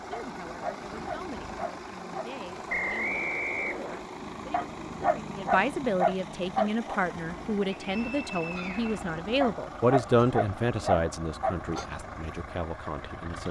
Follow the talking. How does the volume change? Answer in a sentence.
The volume of the talking goes up, then down.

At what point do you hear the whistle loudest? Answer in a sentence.
The loudest moment of the whistle is at 3 seconds.